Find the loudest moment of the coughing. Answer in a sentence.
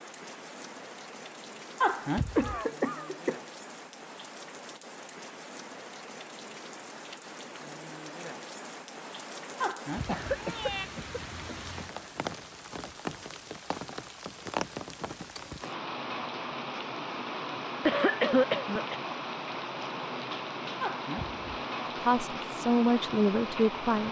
The volume of the coughing peaks at 18 seconds.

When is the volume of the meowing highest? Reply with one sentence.
The volume of the meowing peaks at 2 seconds.